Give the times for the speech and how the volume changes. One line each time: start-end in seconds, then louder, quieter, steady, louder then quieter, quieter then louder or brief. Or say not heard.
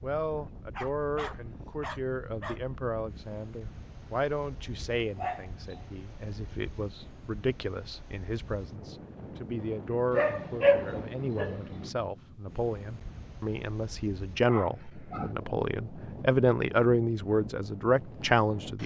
0.0-18.8 louder.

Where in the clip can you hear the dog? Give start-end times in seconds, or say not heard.
0.8-2.6, 5.2-5.9, 10.1-11.9, 14.4-15.3.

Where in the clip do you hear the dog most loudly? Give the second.
11 s.